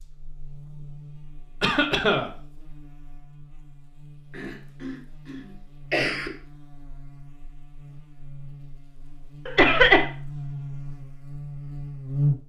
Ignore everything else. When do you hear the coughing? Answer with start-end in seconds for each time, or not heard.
1.6-2.3, 4.3-6.3, 9.4-10.1.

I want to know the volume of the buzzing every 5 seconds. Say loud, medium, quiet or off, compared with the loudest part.
quiet, quiet, loud.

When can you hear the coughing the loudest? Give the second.
10 s.